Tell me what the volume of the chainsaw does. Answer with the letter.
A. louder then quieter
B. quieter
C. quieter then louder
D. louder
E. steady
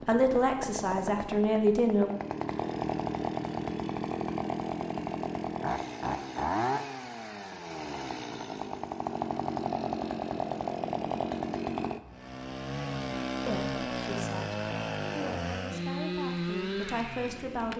E.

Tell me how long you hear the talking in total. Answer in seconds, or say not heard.
6 s.